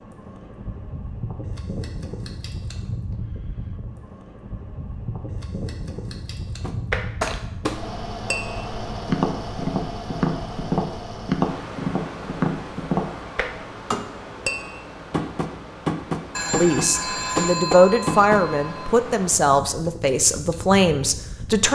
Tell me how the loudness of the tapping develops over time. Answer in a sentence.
The volume of the tapping stays about the same.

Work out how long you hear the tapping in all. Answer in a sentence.
The tapping can be heard for 12 seconds in total.